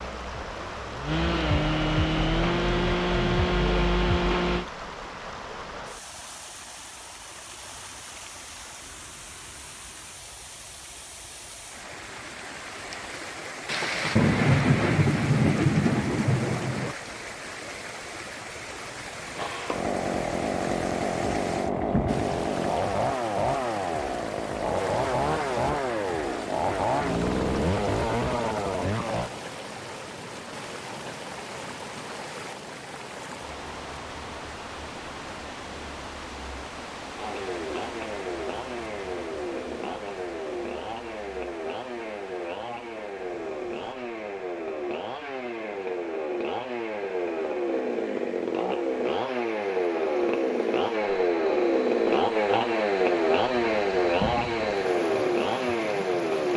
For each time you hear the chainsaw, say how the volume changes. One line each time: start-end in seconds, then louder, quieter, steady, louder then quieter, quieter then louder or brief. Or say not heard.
0.0-4.7 louder
19.3-29.3 steady
37.1-56.5 louder.